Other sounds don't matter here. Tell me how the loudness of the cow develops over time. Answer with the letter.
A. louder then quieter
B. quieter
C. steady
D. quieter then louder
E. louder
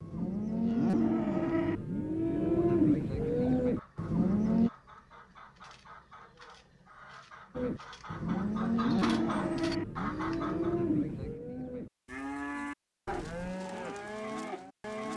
B.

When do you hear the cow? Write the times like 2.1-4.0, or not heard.
0.0-4.7, 7.5-15.1.